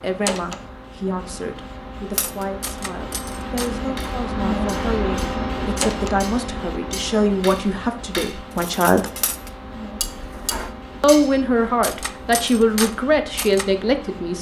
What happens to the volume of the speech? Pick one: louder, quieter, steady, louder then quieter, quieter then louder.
louder.